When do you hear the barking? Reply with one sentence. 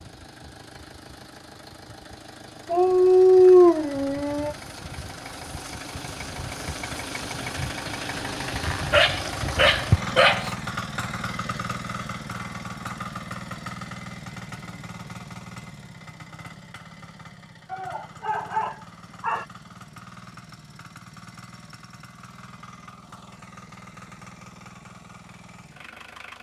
You can hear the barking from 2.7 to 4.5 s, from 8.9 to 10.5 s and from 17.7 to 19.4 s.